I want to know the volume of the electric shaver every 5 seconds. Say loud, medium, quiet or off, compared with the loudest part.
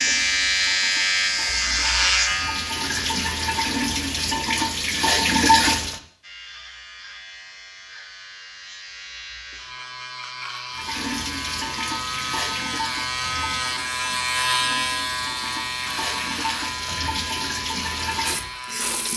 loud, quiet, medium, medium.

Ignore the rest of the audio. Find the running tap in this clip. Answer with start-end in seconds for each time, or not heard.
0.0-6.0, 10.7-19.1.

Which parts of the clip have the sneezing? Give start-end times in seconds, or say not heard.
not heard.